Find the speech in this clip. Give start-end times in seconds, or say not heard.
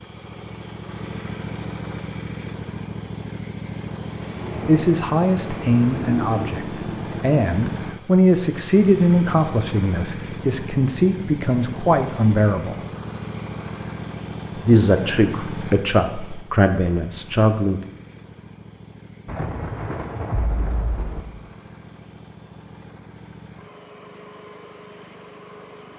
4.7-12.8, 14.6-17.8.